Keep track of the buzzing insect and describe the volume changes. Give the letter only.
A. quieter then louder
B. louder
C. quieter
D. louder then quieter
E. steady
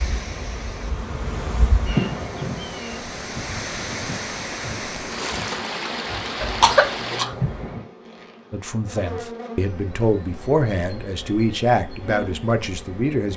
C.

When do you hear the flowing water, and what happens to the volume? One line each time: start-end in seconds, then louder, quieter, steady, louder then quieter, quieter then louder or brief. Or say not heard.
0.0-7.2 louder.